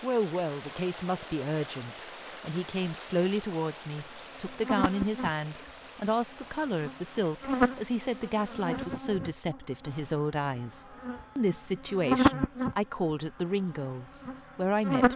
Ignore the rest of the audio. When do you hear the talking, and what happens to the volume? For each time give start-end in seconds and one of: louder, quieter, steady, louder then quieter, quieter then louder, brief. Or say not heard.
0.0-15.1 steady.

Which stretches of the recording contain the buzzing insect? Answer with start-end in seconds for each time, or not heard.
4.1-15.1.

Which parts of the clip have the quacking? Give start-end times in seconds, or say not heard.
not heard.